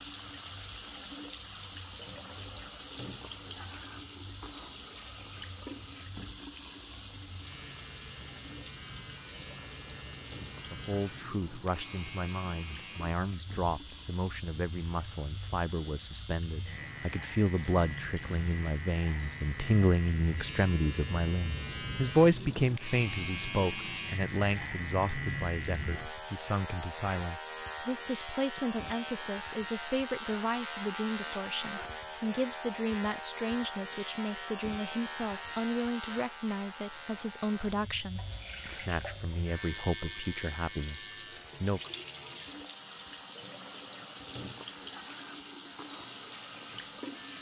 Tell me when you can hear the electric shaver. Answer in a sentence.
You can hear the electric shaver from 0.0 to 47.3 s.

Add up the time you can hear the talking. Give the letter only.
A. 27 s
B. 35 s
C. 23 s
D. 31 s
D.